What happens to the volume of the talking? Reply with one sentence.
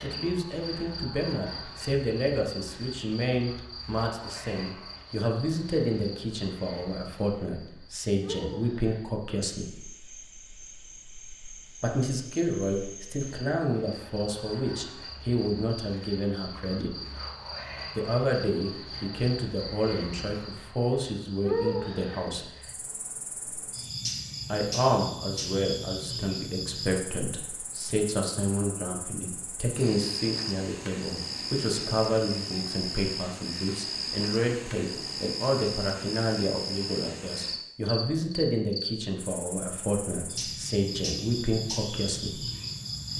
The loudness of the talking stays about the same.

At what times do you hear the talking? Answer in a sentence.
You can hear the talking from 0.0 to 9.8 s, from 11.8 to 16.9 s, from 17.9 to 22.5 s and from 24.5 to 42.5 s.